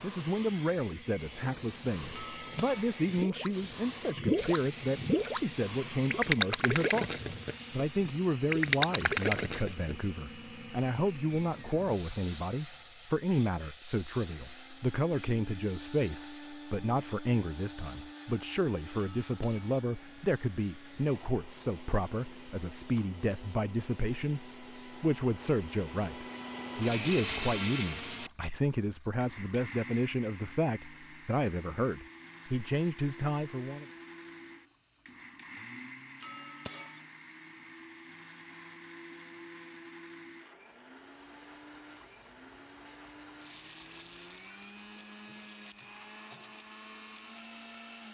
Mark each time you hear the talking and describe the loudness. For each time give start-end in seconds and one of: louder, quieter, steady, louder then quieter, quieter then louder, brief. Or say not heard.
0.0-33.9 steady.